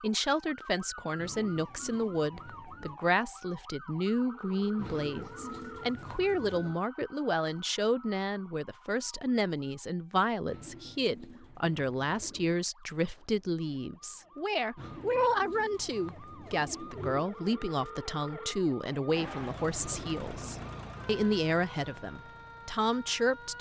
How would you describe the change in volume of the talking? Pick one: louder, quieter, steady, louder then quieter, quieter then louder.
steady.